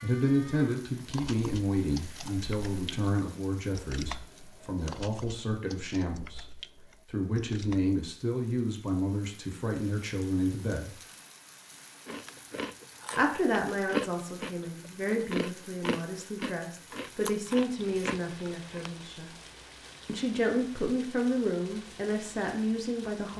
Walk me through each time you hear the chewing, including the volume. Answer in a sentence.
The chewing can be heard from 12.1 to 18.9 s, getting louder then quieter.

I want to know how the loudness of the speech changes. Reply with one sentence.
The volume of the speech stays about the same.